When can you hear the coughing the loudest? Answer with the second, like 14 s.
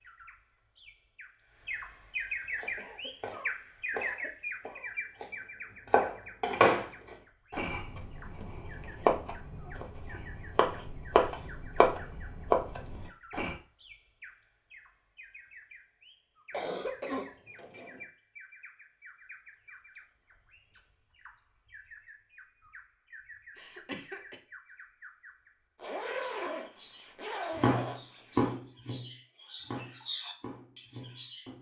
17 s.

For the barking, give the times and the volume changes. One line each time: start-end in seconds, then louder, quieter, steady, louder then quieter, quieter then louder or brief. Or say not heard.
not heard.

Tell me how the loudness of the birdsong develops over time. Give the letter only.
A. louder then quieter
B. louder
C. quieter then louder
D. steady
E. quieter
C.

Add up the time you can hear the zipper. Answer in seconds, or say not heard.
3 s.